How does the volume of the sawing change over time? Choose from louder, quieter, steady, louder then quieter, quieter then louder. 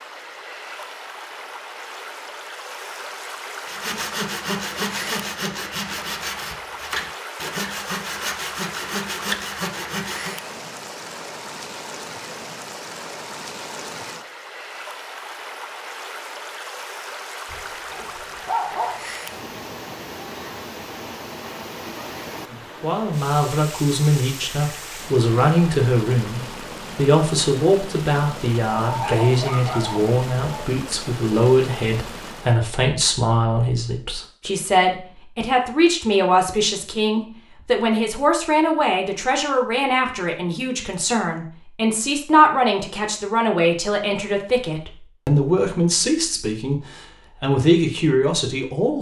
steady.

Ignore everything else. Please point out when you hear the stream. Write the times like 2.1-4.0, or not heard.
0.0-32.6.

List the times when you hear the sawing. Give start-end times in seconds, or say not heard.
3.6-10.4.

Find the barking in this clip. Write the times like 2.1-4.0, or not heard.
17.5-19.3, 28.8-30.7.